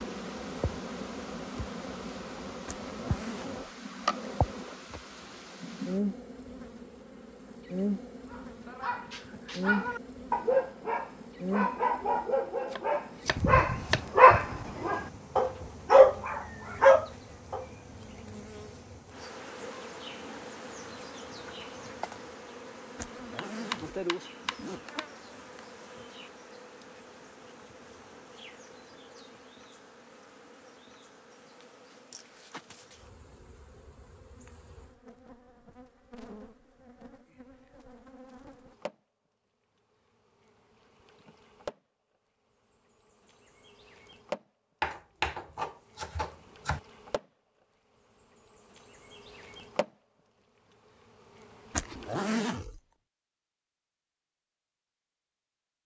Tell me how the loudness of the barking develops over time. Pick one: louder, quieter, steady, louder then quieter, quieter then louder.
louder.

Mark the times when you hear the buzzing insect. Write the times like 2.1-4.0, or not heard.
0.0-39.0, 40.0-41.8, 42.7-44.5, 45.6-47.2, 48.1-49.9, 50.9-52.2.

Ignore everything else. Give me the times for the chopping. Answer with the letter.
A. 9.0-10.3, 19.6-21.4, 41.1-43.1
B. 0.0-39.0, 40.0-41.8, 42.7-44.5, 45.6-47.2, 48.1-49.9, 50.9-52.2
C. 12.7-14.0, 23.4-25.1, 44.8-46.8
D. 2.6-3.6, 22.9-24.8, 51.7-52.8
C.